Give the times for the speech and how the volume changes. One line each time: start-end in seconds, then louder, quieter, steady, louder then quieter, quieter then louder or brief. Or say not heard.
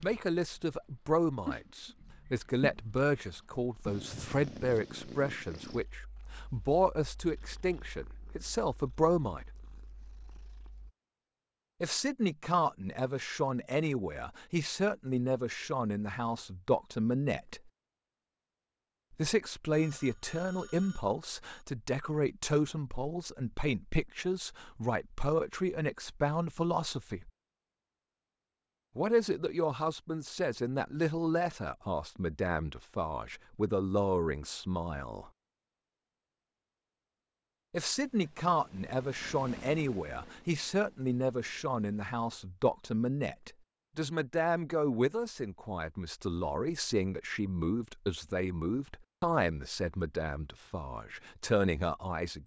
0.0-9.4 steady
11.8-17.7 steady
19.1-27.3 steady
28.9-35.3 steady
37.7-52.4 steady.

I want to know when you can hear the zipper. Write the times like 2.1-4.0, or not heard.
not heard.